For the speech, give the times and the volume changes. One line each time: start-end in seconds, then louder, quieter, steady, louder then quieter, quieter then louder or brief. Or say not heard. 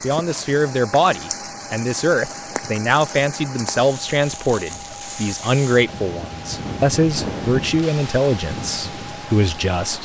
0.0-10.0 steady.